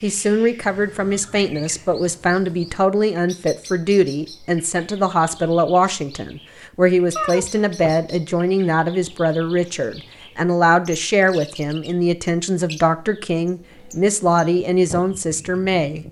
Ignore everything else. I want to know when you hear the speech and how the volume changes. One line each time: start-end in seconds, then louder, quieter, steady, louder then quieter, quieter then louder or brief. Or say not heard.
0.0-16.0 steady.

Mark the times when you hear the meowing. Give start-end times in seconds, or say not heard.
7.2-8.2.